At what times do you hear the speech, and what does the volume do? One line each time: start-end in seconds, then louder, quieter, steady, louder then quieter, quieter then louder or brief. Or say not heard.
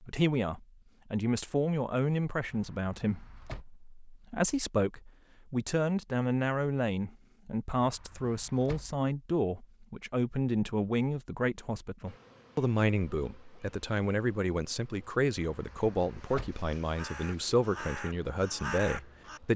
0.0-19.5 steady.